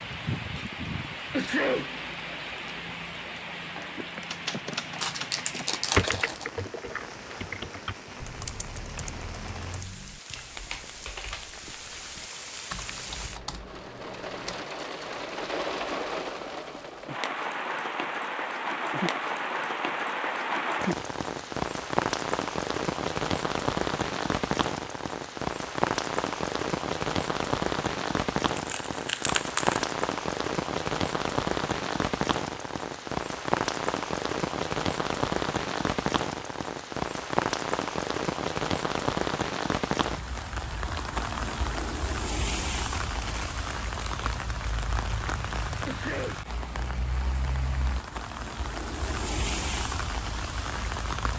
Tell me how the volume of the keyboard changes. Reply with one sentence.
The loudness of the keyboard goes down.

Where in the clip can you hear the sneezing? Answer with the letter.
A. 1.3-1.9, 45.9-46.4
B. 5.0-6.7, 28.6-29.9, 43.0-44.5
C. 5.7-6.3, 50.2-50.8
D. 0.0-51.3
A.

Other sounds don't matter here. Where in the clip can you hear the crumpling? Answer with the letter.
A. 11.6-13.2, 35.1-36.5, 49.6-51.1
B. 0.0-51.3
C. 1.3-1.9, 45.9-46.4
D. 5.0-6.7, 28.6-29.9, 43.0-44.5
D.